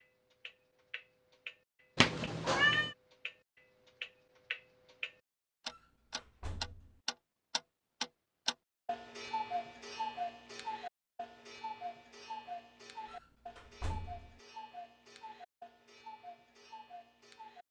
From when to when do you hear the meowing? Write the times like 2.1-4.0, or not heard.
1.9-3.0.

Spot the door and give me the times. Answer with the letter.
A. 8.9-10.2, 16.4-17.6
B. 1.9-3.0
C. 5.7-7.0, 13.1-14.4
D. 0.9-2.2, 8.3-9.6
C.